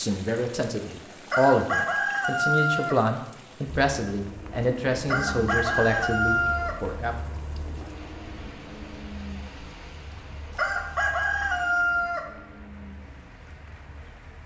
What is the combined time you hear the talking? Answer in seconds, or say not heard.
7 s.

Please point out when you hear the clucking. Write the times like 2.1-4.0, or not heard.
1.2-3.0, 5.0-6.8, 10.6-12.2.